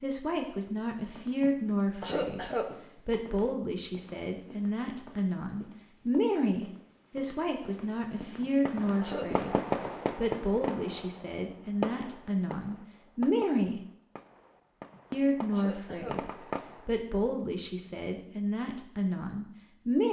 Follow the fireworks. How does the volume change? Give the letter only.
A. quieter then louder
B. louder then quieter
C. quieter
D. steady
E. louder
A.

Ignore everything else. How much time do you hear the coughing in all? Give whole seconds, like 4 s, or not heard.
4 s.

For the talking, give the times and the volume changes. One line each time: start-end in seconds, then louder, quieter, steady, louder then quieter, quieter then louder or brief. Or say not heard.
0.0-13.8 steady
15.1-20.0 steady.